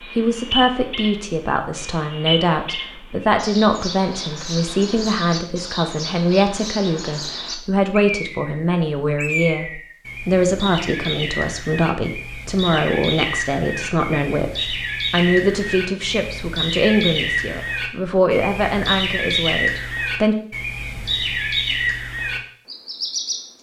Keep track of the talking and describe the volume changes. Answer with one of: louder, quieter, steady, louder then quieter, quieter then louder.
steady.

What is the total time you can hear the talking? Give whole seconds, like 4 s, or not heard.
20 s.